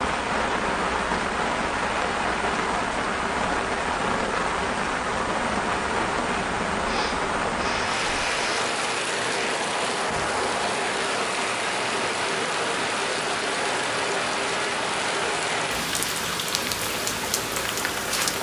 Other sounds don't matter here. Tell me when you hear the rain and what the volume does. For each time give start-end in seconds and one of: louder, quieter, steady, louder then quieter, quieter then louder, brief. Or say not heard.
0.0-18.3 steady.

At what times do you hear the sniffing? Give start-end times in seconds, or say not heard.
6.8-8.6.